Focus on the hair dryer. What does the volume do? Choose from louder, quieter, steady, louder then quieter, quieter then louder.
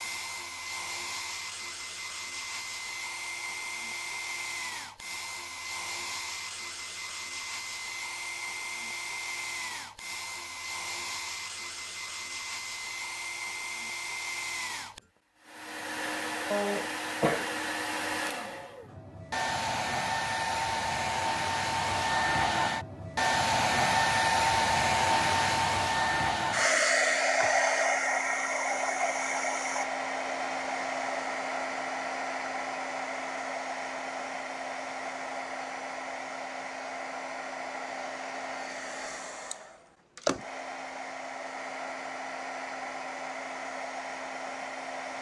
louder then quieter.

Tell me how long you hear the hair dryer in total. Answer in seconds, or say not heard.
45 s.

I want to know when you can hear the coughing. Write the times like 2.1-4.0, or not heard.
16.5-17.5.